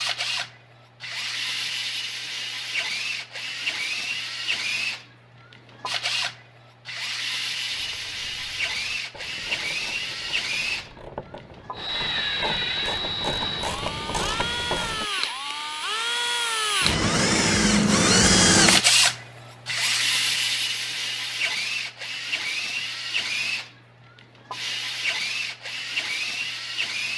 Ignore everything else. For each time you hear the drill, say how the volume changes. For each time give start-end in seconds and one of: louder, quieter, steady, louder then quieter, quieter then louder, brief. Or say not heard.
0.0-27.1 louder then quieter.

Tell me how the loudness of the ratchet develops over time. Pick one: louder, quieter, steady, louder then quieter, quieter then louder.
louder.